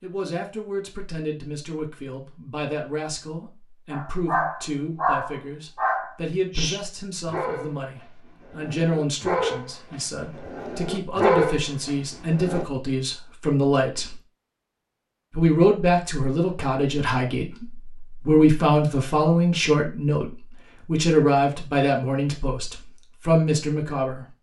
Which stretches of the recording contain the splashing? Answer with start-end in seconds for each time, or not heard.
not heard.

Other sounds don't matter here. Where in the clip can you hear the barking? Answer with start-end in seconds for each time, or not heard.
3.9-12.7.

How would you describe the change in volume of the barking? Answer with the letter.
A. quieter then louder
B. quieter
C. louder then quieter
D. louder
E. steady
A.